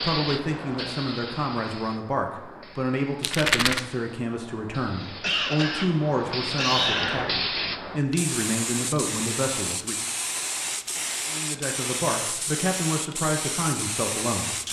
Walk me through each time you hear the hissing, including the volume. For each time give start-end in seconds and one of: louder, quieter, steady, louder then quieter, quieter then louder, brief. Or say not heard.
0.0-14.6 louder.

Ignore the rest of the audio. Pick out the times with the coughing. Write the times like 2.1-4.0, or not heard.
4.8-7.2.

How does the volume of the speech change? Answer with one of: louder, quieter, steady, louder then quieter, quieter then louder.
steady.